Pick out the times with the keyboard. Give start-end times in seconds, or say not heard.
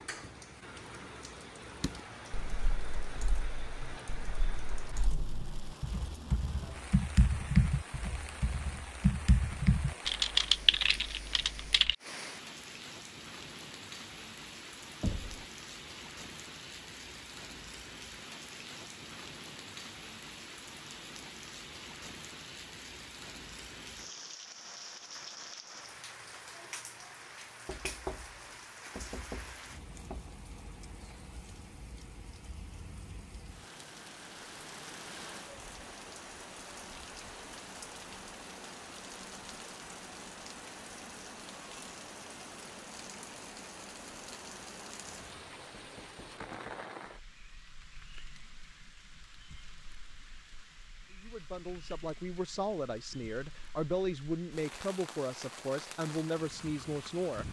1.8-11.9.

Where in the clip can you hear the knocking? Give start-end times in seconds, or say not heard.
15.0-15.4, 27.6-30.3, 45.0-46.9.